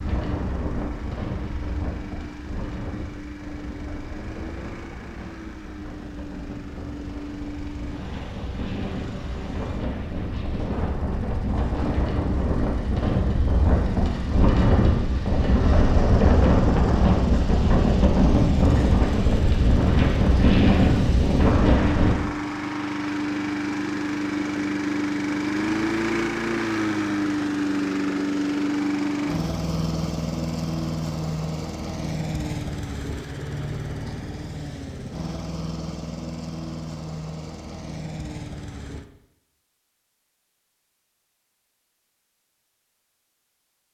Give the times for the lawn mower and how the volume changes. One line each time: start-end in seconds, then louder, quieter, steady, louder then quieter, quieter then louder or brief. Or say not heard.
0.0-39.0 louder then quieter.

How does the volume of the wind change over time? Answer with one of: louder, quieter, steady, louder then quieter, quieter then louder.
louder.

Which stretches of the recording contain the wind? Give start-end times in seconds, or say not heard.
0.0-22.1.